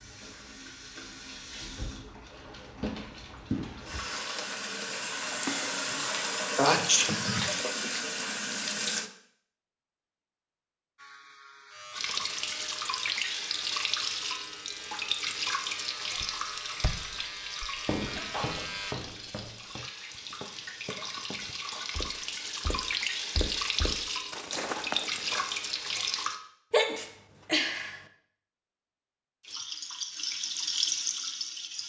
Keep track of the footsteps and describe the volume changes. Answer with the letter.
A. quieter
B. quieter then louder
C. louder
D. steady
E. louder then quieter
B.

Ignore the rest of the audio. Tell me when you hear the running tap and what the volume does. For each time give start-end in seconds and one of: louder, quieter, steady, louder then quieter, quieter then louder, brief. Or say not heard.
0.0-9.1 louder
11.9-26.4 quieter then louder
29.4-31.8 brief.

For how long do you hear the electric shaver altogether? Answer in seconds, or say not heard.
8 s.